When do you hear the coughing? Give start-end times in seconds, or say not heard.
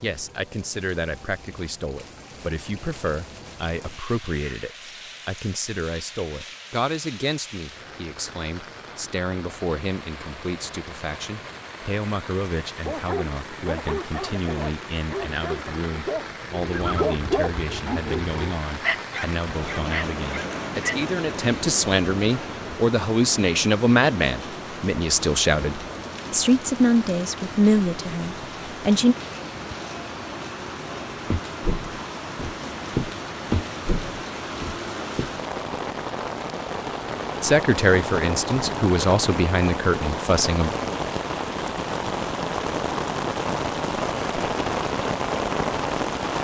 not heard.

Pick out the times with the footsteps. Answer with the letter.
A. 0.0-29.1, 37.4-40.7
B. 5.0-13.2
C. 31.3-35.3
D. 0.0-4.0
C.